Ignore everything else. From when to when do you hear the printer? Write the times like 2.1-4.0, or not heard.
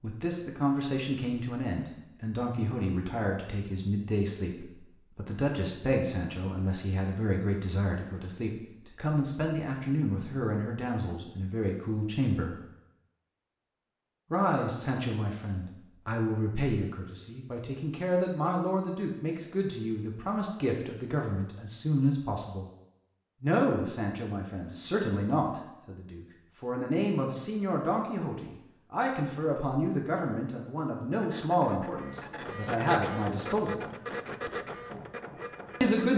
31.2-36.1.